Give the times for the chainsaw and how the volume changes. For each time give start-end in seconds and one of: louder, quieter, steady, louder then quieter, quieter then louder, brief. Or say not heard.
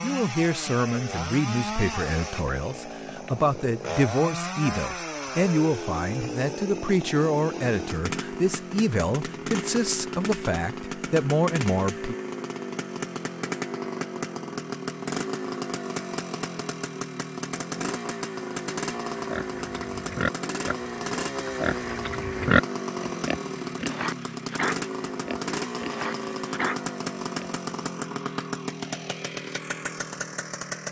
0.0-30.8 steady.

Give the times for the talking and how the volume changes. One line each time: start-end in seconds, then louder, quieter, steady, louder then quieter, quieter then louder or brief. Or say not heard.
0.0-12.2 steady.